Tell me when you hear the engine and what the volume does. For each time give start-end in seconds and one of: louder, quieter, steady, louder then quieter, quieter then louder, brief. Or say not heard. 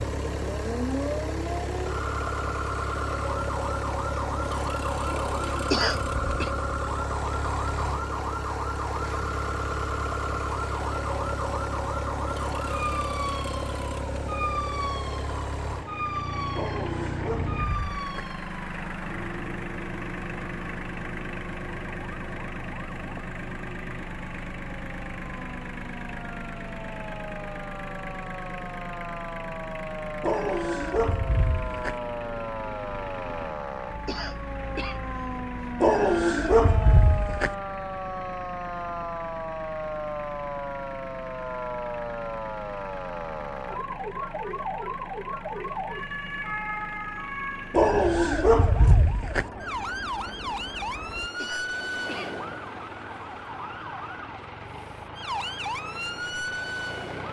0.0-57.2 quieter.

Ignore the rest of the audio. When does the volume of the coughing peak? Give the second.
6 s.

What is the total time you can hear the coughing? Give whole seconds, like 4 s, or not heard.
3 s.